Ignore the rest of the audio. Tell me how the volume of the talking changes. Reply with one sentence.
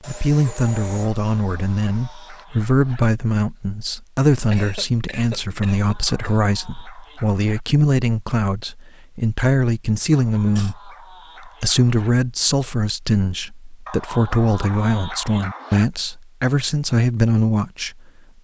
The loudness of the talking stays about the same.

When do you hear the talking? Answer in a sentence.
You can hear the talking from 0.1 to 18.0 s.